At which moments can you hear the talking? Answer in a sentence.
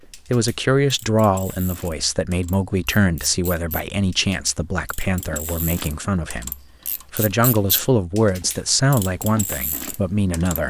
You can hear the talking from 0.1 to 10.6 s.